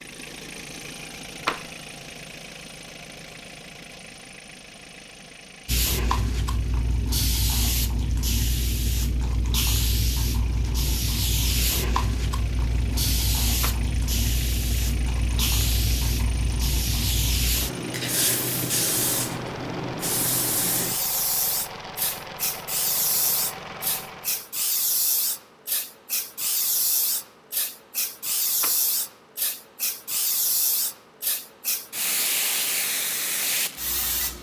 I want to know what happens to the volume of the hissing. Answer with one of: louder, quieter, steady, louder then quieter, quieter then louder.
steady.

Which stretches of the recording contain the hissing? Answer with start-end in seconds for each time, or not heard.
5.7-34.3.